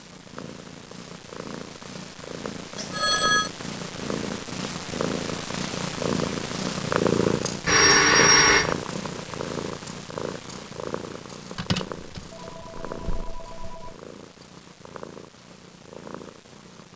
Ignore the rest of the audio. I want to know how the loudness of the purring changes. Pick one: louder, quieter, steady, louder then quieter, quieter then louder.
louder then quieter.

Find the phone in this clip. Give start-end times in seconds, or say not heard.
2.8-3.5, 7.7-8.8, 11.6-13.9.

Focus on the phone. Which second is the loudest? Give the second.
8 s.